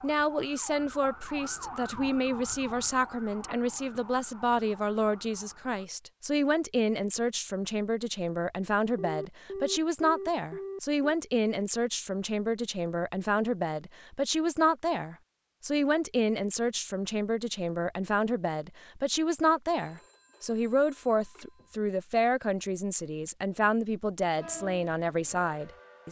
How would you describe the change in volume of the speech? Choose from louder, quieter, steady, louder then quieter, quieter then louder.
steady.